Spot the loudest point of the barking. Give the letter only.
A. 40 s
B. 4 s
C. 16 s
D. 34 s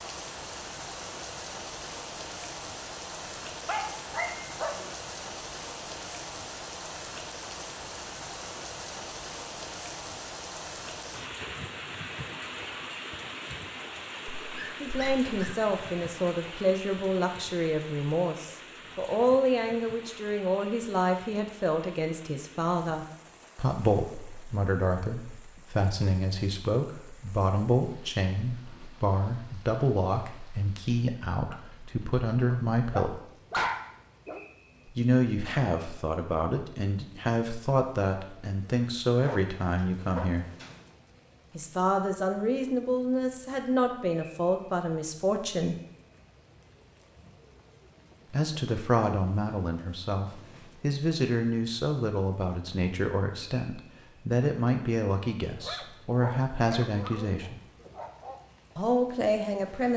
D.